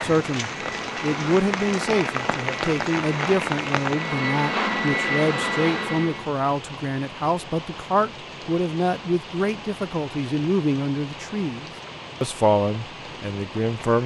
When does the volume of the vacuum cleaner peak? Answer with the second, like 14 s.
5 s.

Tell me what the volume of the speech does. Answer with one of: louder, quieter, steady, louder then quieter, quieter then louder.
steady.